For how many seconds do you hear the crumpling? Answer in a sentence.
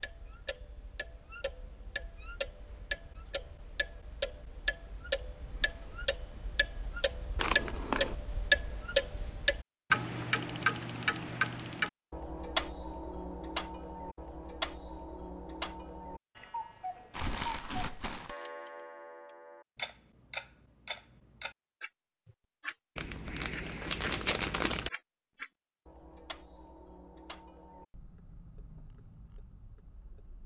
You can hear the crumpling for 4 seconds altogether.